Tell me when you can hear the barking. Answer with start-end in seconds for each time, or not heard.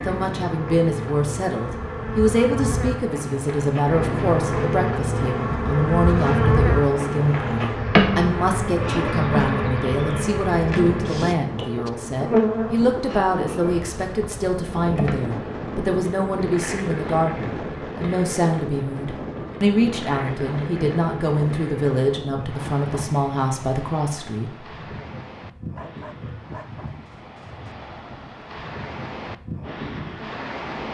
25.8-27.6.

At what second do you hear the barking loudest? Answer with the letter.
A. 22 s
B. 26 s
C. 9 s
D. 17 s
B.